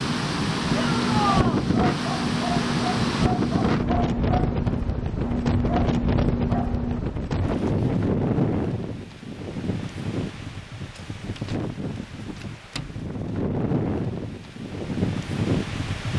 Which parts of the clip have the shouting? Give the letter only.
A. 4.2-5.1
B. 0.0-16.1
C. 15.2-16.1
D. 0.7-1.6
D.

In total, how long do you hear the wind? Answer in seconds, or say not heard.
16 s.